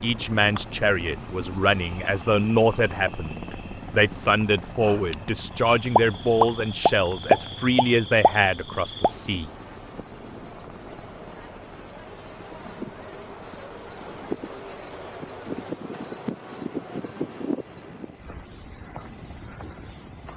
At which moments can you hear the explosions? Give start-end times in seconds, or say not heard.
6.0-9.1.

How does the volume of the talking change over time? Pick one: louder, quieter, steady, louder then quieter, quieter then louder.
steady.